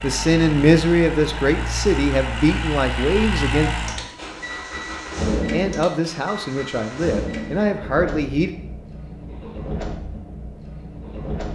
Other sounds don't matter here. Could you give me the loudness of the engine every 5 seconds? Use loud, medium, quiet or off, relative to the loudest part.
loud, loud, medium.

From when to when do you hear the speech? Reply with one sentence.
You can hear the speech from 0.0 to 3.7 s and from 5.5 to 8.6 s.